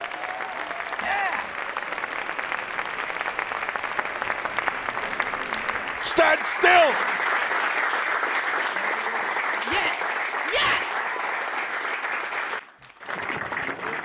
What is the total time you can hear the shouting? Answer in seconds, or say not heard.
3 s.